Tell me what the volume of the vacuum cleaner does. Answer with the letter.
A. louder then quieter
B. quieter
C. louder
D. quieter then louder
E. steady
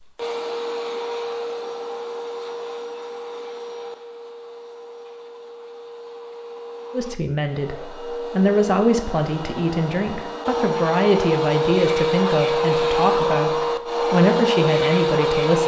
D.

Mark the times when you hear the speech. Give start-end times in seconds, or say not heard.
6.9-15.6.